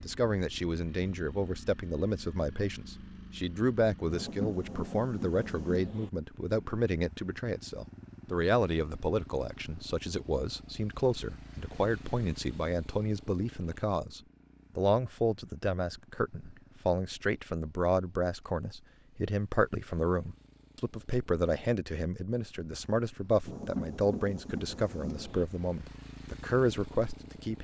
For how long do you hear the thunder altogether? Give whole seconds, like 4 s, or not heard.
4 s.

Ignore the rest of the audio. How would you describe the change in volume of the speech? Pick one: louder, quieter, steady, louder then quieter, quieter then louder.
steady.